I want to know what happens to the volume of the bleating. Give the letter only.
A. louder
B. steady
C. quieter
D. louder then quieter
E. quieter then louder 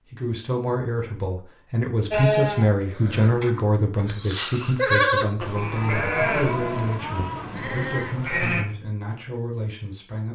D.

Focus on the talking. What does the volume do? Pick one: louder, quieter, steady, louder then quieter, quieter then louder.
quieter.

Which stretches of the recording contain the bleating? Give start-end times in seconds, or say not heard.
2.1-8.7.